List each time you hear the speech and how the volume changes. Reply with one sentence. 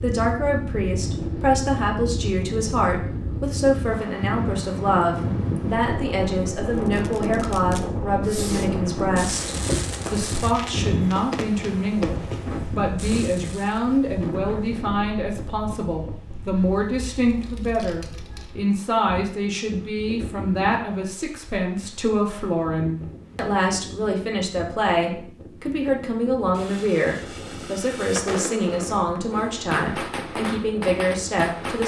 The speech can be heard from 0.0 to 31.8 s, at a steady volume.